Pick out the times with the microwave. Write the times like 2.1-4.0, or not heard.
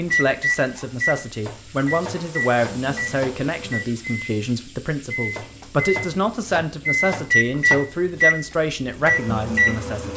0.1-10.1.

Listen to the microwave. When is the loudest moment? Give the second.
8 s.